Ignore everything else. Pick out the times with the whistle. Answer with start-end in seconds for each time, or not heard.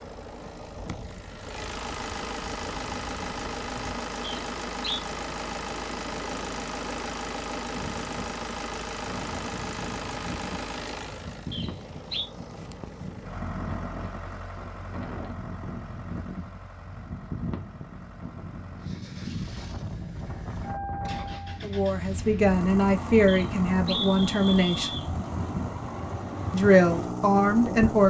4.2-5.0, 11.5-12.2, 23.2-25.1.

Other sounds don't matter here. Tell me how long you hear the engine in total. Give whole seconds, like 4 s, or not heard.
28 s.